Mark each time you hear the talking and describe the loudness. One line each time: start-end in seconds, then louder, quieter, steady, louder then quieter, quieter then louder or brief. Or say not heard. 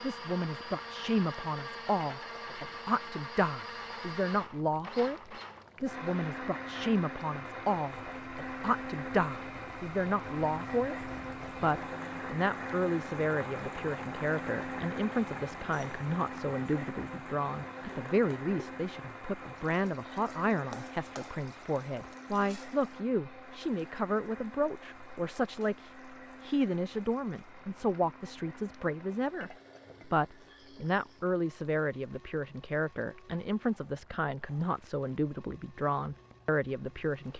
0.0-37.3 steady.